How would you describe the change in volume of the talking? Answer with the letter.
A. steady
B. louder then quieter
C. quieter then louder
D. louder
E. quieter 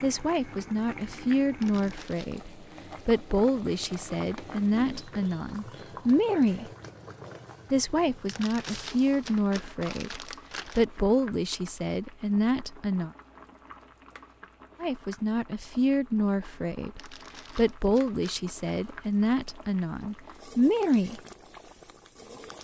A.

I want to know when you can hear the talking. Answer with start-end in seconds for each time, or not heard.
0.0-6.7, 7.7-13.1, 14.8-21.2.